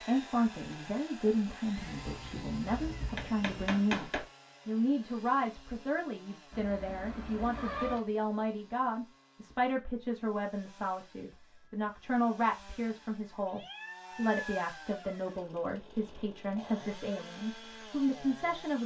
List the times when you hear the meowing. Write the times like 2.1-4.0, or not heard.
1.8-3.7, 6.5-8.0, 13.4-15.4.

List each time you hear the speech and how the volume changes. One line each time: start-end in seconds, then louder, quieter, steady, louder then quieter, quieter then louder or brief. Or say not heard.
0.0-18.8 steady.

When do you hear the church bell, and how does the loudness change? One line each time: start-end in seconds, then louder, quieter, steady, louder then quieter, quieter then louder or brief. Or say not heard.
not heard.